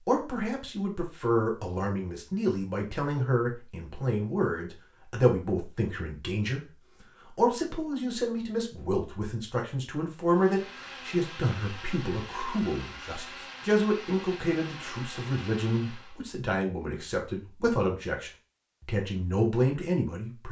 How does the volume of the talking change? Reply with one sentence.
The volume of the talking stays about the same.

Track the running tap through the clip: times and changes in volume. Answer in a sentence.
The running tap can't be heard in this clip.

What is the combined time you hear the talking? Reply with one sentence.
You can hear the talking for 20 seconds altogether.